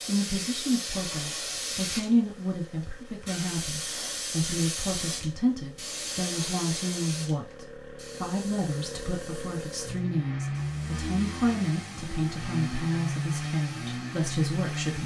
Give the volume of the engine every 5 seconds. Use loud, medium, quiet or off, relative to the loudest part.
quiet, medium, loud.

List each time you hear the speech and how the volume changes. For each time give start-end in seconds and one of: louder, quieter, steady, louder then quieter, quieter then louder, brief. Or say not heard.
0.1-15.0 steady.